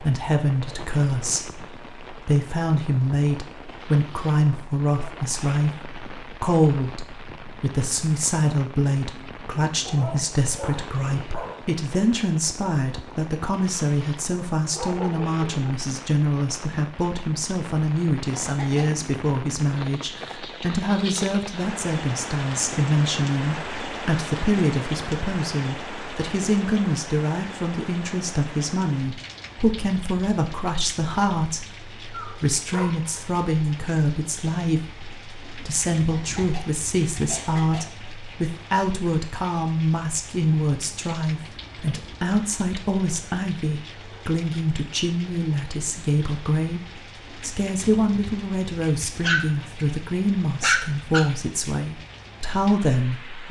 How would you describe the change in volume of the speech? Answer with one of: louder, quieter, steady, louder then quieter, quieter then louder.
steady.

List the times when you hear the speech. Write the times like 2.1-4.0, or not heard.
0.0-53.4.